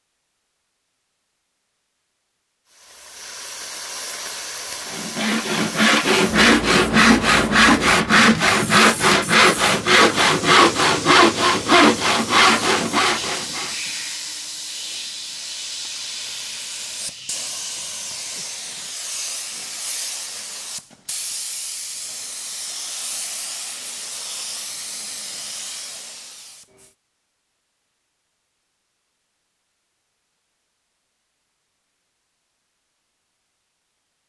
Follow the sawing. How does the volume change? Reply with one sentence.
The volume of the sawing stays about the same.